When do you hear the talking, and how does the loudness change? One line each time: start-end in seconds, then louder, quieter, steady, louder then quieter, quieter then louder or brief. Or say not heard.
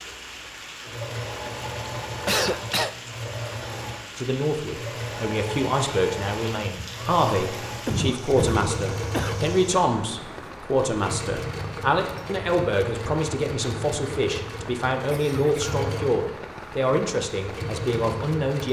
4.2-18.6 steady.